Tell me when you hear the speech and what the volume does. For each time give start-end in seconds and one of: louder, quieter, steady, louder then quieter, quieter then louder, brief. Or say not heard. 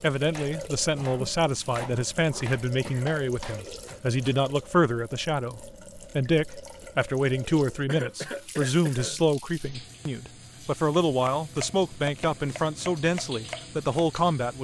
0.0-14.5 steady.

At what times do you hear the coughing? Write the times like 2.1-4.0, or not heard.
0.9-3.1, 7.8-9.2.